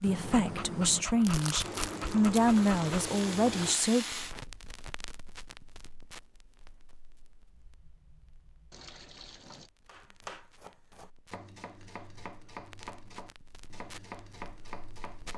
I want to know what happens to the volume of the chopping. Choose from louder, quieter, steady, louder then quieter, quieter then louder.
steady.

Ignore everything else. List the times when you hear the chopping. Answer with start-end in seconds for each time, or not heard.
9.8-15.3.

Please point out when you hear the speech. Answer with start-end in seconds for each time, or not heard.
0.0-4.2.